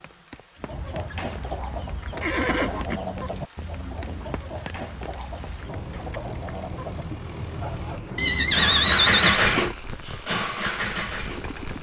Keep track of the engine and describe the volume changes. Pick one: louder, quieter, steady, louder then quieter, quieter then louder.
louder then quieter.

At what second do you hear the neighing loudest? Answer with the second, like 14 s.
9 s.